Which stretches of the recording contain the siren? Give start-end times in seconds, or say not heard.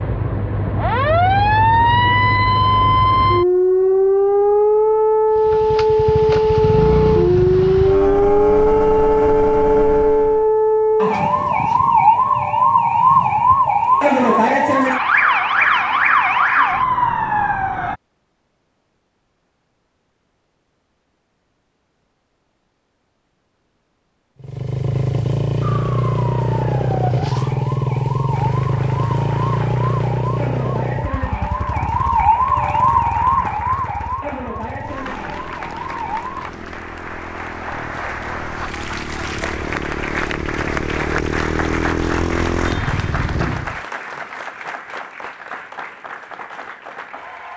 0.0-17.9, 25.6-36.5.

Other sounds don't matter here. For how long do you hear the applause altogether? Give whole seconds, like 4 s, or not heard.
19 s.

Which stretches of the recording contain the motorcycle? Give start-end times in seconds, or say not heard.
5.3-10.5, 24.4-43.8.